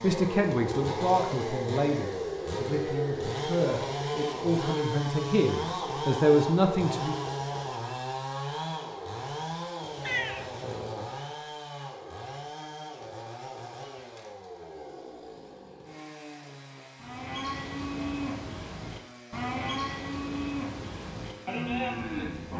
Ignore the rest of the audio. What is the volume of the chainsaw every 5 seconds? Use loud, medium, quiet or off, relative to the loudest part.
loud, loud, medium, quiet, quiet.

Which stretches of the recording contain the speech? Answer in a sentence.
The speech can be heard from 0.0 to 7.2 s.